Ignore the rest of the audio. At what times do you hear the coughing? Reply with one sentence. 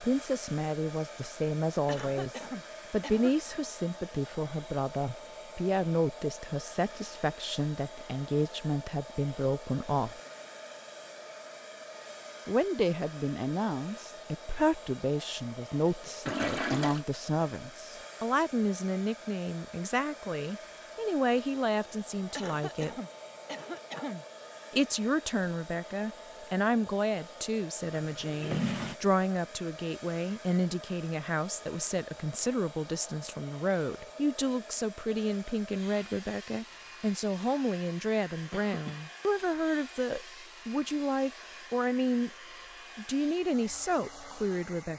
The coughing can be heard from 1.9 to 3.5 s, from 22.4 to 24.2 s and from 38.5 to 39.0 s.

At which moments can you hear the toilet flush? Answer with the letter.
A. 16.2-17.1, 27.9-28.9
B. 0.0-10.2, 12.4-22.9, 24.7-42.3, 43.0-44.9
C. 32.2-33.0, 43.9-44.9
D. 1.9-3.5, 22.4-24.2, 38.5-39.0
A.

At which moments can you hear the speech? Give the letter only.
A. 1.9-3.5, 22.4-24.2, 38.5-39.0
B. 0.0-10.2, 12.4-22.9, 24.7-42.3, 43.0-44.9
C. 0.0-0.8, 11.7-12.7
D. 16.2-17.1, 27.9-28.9
B.